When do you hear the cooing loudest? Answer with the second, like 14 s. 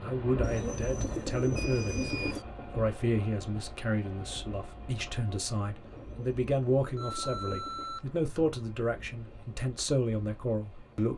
1 s.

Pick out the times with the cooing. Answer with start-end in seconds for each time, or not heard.
0.4-2.5, 6.0-8.0.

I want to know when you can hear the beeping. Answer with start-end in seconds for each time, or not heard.
1.6-2.4, 7.0-8.0.